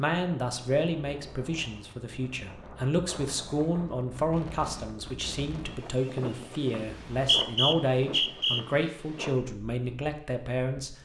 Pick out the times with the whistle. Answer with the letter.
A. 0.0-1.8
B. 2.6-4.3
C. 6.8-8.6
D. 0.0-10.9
C.